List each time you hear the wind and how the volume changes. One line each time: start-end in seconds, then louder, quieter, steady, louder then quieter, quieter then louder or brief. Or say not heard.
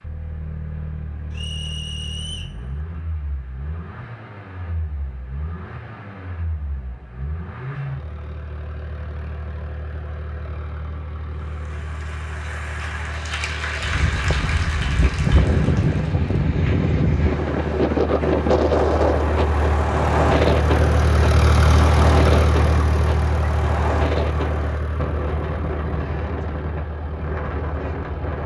13.8-28.4 quieter.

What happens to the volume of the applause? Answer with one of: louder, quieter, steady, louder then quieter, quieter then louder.
louder then quieter.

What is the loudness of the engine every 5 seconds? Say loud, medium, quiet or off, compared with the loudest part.
quiet, quiet, quiet, medium, loud, quiet.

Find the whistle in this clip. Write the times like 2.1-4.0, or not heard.
1.3-2.5.